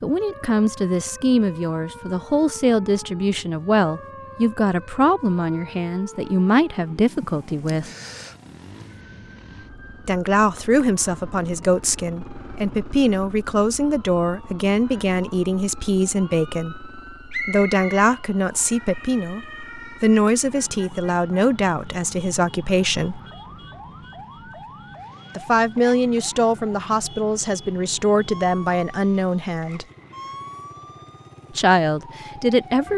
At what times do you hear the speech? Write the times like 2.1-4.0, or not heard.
0.0-7.9, 10.1-23.2, 25.4-29.9, 31.6-32.9.